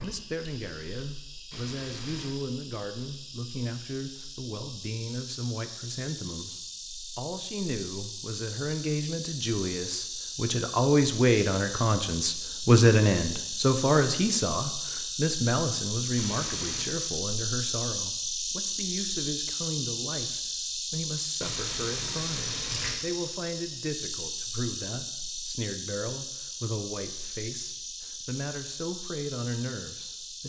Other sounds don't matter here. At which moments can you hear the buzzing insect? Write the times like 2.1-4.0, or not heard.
0.0-30.4.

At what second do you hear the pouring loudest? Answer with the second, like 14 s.
23 s.